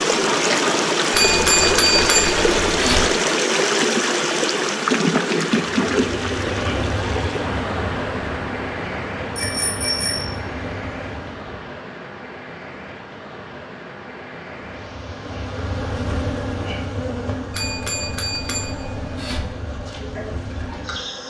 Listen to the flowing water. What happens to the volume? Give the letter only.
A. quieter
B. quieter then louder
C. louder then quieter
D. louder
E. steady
A.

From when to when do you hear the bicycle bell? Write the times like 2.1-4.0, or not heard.
1.1-3.1, 9.3-10.3, 17.5-19.6.